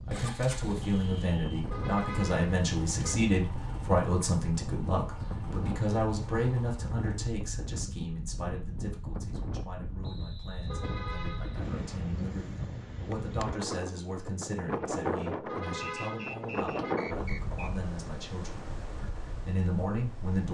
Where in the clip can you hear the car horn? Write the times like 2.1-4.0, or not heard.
1.6-3.1, 10.7-11.7, 15.4-16.9.